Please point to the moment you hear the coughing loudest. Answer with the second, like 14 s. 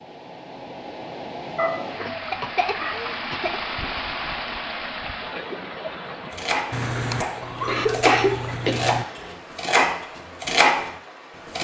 8 s.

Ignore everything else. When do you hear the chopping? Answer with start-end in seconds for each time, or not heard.
6.3-10.9.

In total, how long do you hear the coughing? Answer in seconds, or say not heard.
3 s.